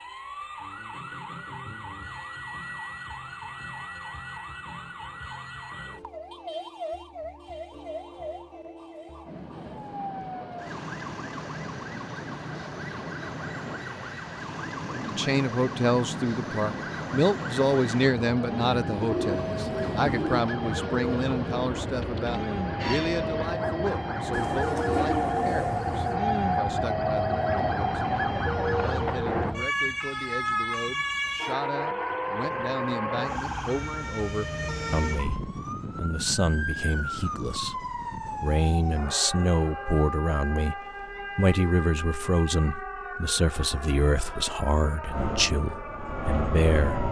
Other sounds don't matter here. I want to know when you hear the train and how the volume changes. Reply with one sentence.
The train can be heard from 9.2 to 29.6 s, getting louder; and briefly from 45.1 to 47.0 s.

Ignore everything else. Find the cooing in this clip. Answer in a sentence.
The cooing can be heard from 18.9 to 20.4 s and from 24.3 to 26.1 s.